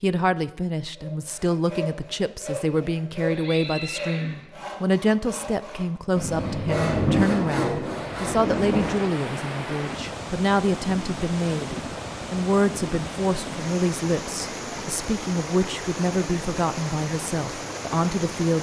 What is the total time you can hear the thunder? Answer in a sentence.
The thunder can be heard for 3 seconds in total.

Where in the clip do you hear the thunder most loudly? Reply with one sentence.
The loudest moment of the thunder is at 7 seconds.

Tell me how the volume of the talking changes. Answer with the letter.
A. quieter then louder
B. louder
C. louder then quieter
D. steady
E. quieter
D.